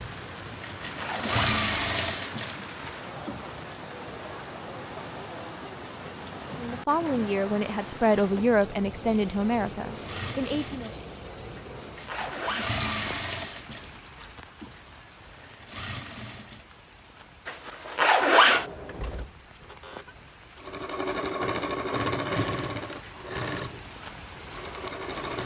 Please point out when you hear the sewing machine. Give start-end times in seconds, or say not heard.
0.0-3.4, 9.9-16.7, 20.6-25.4.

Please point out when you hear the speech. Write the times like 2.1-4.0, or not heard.
6.5-10.9.